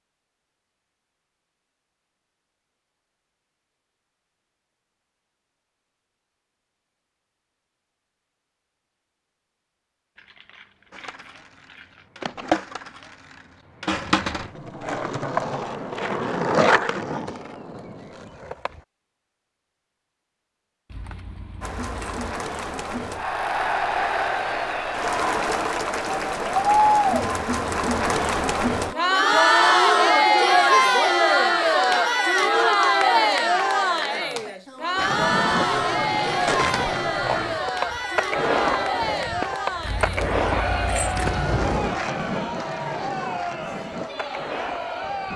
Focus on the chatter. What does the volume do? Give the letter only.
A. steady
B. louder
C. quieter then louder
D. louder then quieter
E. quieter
D.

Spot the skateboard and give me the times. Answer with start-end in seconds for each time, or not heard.
10.9-18.8, 35.0-45.3.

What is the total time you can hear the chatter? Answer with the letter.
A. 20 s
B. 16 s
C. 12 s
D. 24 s
D.